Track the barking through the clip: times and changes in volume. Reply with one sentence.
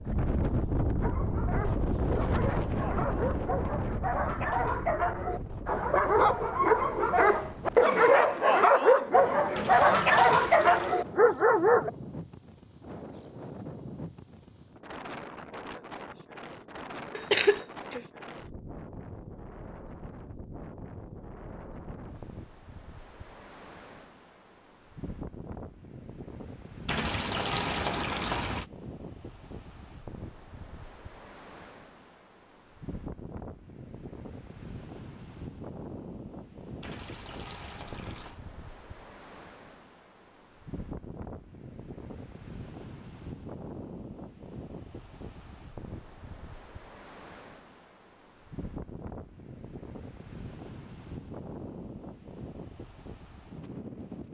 The barking can be heard from 1.0 to 11.9 s, getting louder.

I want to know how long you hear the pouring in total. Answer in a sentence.
The pouring can be heard for 5 seconds in total.